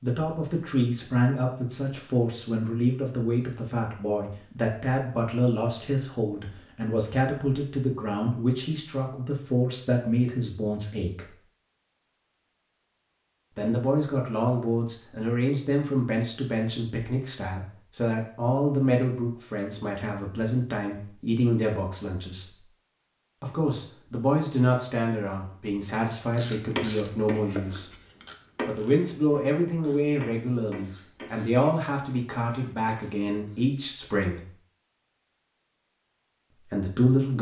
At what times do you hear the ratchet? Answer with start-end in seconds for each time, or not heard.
26.4-33.6.